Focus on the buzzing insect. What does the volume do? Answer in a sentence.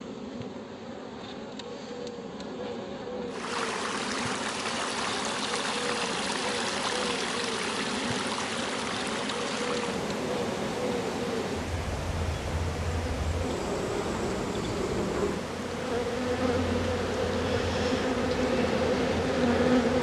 The volume of the buzzing insect goes up.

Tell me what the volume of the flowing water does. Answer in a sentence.
The volume of the flowing water goes down.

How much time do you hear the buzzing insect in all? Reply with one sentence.
You can hear the buzzing insect for 20 seconds altogether.